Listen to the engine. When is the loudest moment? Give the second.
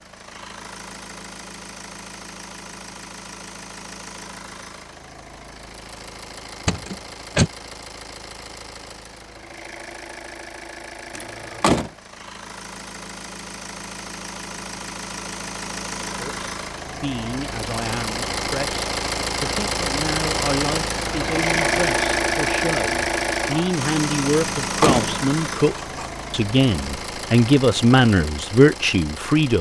22 s.